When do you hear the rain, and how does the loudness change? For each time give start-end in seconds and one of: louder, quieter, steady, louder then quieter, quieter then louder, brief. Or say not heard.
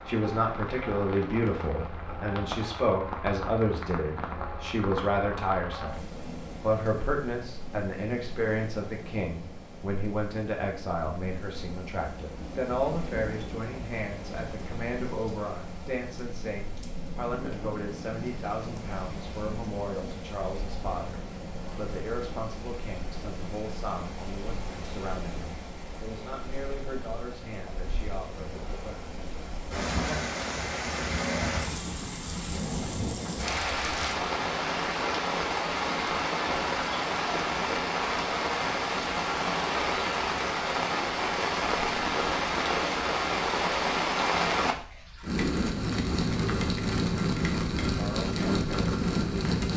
0.0-49.7 louder.